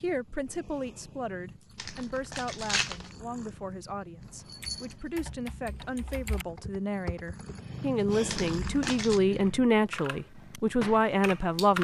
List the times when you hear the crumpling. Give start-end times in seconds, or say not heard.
1.8-3.1, 8.2-9.2.